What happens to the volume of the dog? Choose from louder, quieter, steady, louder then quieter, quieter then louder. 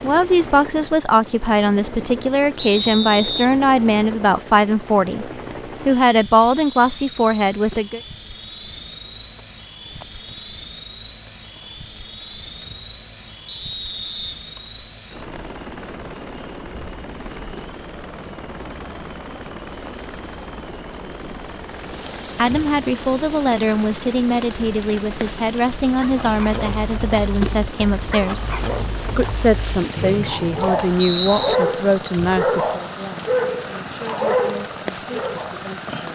louder.